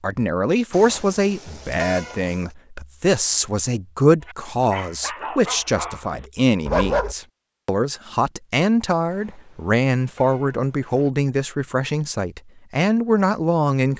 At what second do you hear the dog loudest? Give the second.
7 s.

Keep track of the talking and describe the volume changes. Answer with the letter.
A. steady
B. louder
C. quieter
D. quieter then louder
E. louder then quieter
A.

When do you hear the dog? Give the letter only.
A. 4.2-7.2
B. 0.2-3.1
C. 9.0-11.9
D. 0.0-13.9
A.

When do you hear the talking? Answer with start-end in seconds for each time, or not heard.
0.0-13.9.